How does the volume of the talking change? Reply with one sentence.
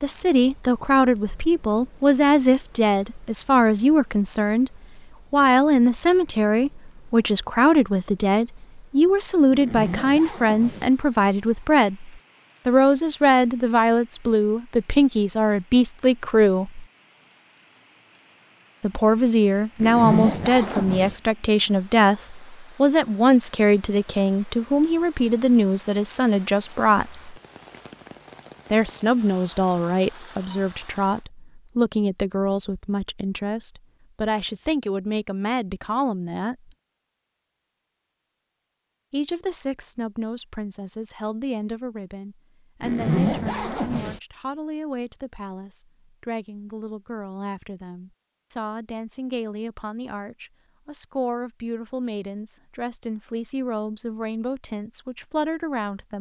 The volume of the talking goes down.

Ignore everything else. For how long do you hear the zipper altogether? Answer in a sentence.
You can hear the zipper for 4 seconds altogether.